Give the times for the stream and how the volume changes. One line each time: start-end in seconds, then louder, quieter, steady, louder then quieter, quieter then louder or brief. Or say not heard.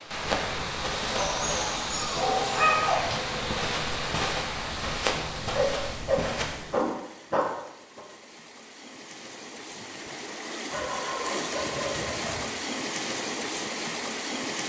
0.0-14.6 quieter then louder.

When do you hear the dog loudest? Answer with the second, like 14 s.
3 s.